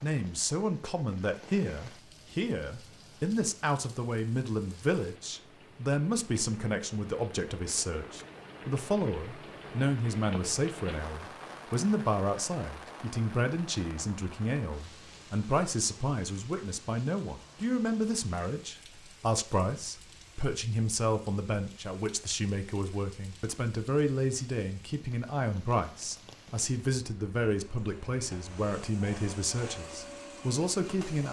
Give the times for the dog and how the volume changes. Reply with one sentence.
The dog can't be heard in this clip.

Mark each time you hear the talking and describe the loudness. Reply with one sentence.
The talking can be heard from 0.0 to 31.2 s, at a steady volume.